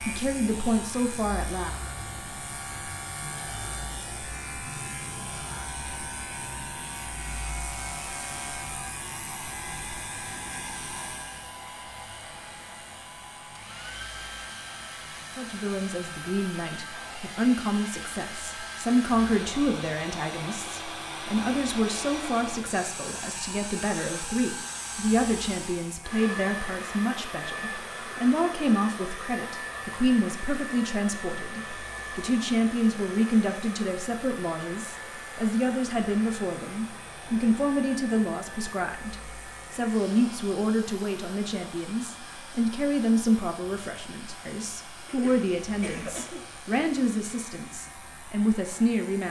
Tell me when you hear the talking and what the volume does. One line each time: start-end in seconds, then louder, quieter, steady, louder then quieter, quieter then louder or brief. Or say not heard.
0.0-1.8 brief
15.3-49.2 steady.